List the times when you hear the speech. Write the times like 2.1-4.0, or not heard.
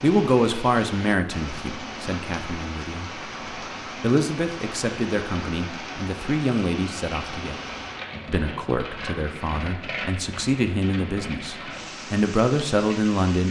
0.0-3.0, 4.0-7.6, 8.2-13.4.